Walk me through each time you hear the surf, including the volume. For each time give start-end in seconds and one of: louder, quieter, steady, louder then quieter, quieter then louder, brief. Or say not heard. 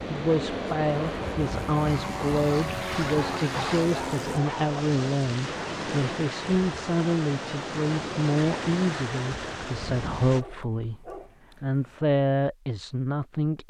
0.0-10.4 steady.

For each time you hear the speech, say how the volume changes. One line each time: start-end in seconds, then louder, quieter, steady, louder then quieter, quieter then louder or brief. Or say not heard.
0.1-13.6 steady.